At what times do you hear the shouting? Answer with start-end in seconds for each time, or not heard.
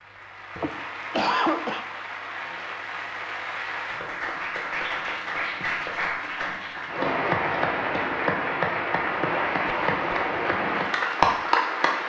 not heard.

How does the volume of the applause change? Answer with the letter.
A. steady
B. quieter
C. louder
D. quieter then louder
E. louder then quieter
C.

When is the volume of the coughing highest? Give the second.
1 s.